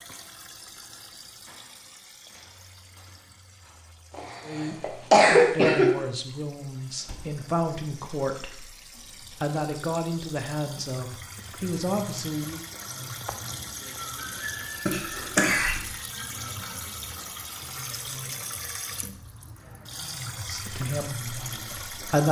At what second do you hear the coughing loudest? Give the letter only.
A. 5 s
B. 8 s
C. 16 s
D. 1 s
A.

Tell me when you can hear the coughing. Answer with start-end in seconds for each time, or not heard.
4.2-5.9, 14.8-15.8.